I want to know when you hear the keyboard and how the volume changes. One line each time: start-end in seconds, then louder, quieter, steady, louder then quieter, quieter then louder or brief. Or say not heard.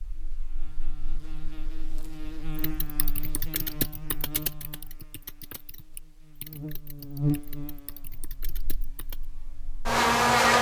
2.6-9.2 quieter.